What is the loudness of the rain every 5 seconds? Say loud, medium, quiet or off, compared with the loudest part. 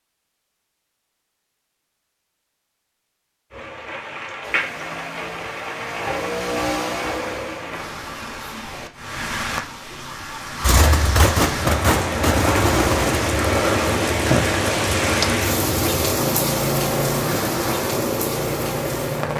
medium, medium, loud, loud.